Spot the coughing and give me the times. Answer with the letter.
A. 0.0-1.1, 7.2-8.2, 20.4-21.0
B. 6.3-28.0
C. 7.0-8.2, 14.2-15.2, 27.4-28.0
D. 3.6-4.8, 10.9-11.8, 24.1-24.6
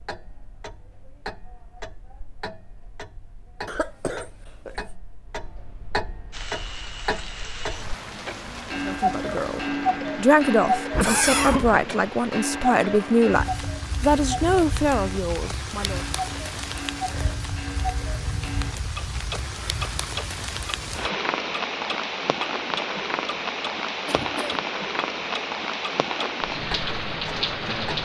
D.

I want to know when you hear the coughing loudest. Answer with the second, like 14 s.
11 s.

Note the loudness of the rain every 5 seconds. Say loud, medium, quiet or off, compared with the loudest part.
off, medium, medium, medium, loud, loud.